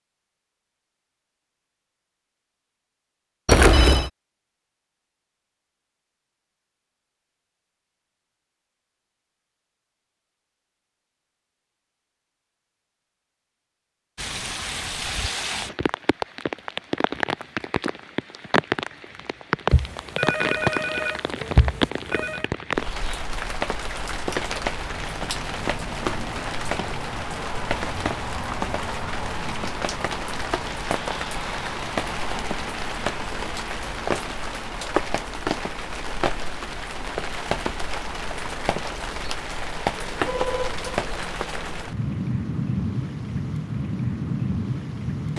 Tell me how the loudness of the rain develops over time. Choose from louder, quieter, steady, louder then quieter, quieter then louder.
steady.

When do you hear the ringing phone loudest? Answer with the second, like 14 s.
4 s.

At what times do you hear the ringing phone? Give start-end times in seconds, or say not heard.
3.5-4.1, 19.7-22.4, 40.2-40.9.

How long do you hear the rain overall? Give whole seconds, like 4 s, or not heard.
31 s.